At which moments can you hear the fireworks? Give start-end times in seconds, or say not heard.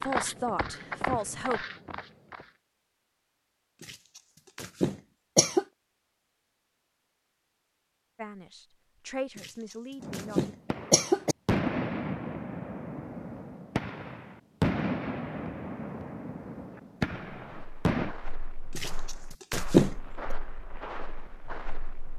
10.0-18.1.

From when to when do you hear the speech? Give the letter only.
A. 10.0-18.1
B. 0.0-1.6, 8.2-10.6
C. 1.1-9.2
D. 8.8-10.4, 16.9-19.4
B.